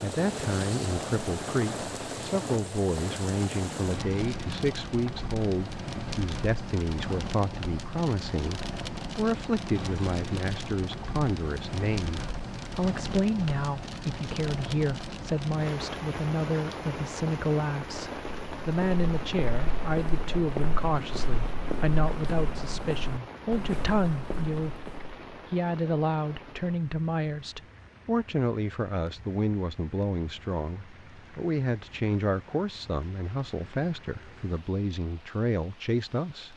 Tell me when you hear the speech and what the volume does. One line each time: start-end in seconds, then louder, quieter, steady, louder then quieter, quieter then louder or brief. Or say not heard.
0.0-36.5 steady.